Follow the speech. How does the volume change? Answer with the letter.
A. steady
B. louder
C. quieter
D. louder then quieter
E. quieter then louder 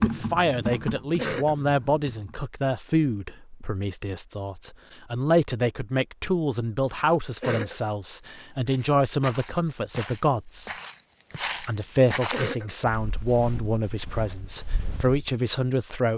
A.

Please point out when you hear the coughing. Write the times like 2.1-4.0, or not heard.
1.1-1.6, 7.4-7.8, 12.3-12.8.